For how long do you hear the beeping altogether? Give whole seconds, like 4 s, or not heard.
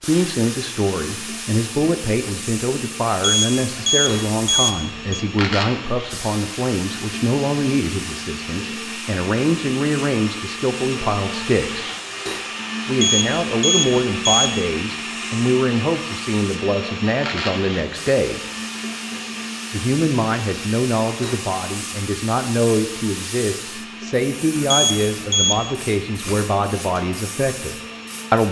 5 s.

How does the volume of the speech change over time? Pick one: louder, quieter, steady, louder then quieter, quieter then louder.
steady.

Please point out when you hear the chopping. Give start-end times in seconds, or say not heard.
not heard.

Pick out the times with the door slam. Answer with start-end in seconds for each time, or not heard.
not heard.